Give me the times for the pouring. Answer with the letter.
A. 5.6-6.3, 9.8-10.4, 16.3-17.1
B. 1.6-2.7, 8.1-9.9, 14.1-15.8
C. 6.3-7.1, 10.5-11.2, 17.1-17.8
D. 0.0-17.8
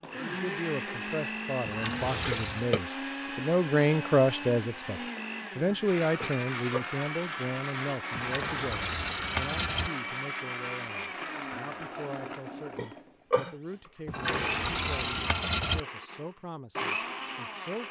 B.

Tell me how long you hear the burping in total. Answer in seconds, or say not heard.
2 s.